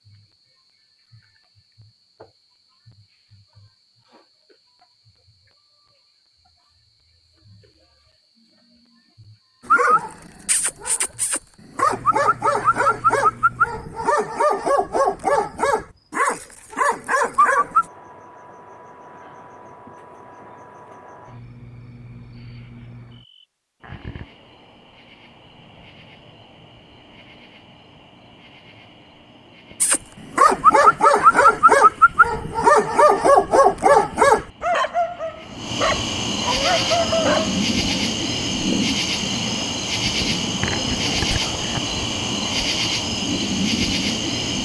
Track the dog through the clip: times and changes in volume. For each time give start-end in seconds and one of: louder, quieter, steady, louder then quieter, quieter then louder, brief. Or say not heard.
9.7-17.9 louder
29.8-38.0 quieter.